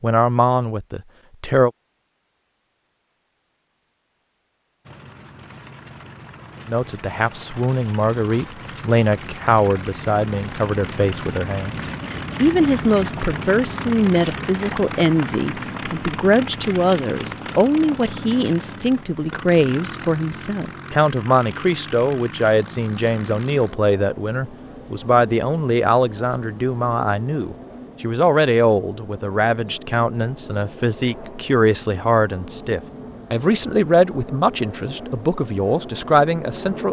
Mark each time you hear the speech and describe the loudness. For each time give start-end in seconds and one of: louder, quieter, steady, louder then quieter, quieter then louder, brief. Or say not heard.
0.0-1.7 brief
6.7-36.8 steady.